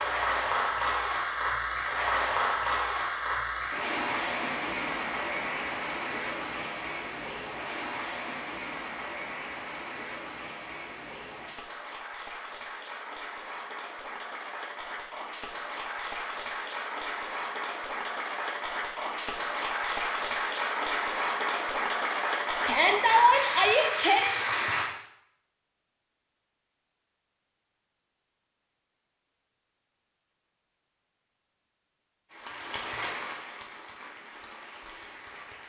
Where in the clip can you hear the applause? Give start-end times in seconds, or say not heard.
0.0-24.9, 32.2-35.6.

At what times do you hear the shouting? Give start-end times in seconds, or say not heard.
22.6-24.4.